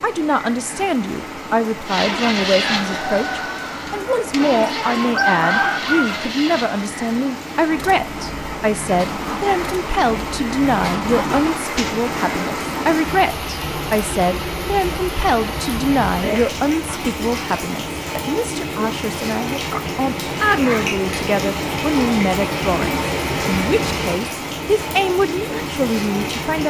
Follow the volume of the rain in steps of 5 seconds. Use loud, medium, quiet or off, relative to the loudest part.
medium, medium, loud, loud, loud, loud.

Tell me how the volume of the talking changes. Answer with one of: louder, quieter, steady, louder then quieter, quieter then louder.
steady.